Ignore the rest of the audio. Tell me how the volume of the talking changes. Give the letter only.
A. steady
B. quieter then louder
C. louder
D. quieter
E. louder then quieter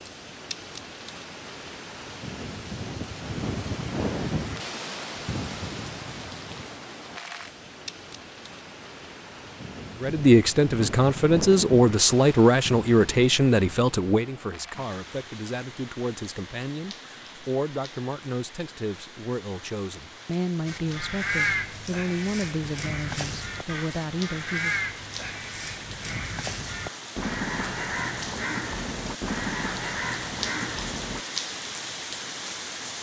D.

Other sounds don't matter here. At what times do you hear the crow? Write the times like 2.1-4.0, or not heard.
20.6-31.2.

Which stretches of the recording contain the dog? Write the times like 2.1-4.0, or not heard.
not heard.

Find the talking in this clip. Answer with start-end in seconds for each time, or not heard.
10.0-24.8.